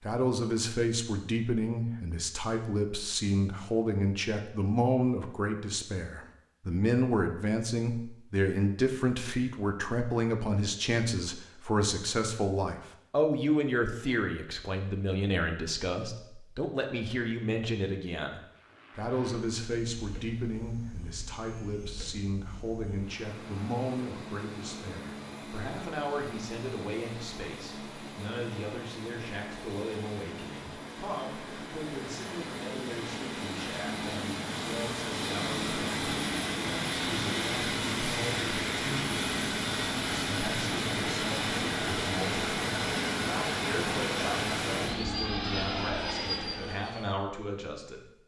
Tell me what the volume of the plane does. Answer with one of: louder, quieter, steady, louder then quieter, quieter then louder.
louder.